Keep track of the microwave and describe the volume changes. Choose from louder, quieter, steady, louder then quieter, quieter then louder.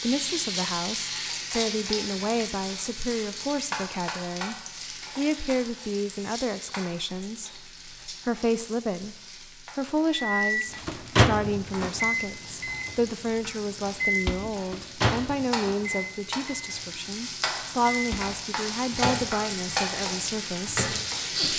quieter.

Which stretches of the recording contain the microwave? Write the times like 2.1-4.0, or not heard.
10.3-21.5.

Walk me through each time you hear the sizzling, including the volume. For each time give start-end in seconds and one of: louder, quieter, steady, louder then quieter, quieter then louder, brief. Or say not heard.
0.0-21.5 quieter then louder.